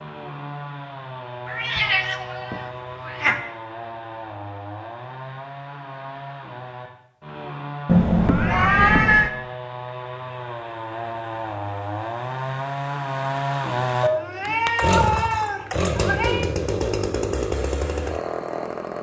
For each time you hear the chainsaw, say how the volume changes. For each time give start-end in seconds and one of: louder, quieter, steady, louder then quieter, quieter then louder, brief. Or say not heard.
0.0-18.9 louder.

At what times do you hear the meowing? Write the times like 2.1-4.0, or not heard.
1.4-3.4, 7.8-9.3, 14.0-16.4.